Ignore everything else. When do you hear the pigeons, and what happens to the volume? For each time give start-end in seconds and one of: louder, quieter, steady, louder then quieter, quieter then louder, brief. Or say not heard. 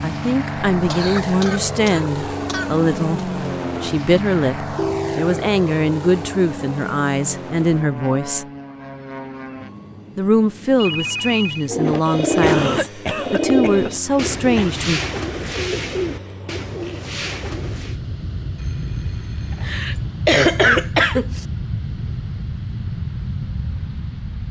11.7-18.0 quieter.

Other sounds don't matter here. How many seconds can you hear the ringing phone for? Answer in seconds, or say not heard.
3 s.